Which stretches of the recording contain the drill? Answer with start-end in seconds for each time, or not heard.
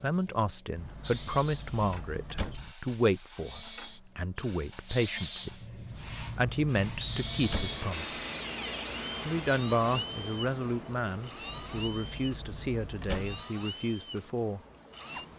0.0-1.6, 3.4-15.3.